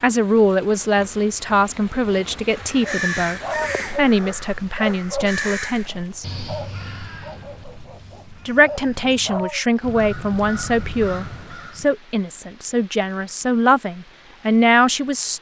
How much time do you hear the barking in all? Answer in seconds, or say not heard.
7 s.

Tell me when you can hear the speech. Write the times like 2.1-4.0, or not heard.
0.0-6.2, 8.4-15.3.